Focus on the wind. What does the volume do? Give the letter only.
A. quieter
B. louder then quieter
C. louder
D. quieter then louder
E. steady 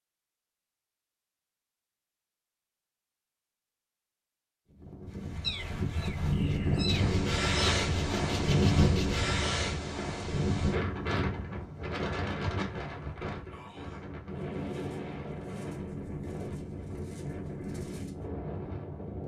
A.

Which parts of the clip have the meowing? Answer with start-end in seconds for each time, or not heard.
5.4-7.8.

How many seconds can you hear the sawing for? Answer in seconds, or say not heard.
3 s.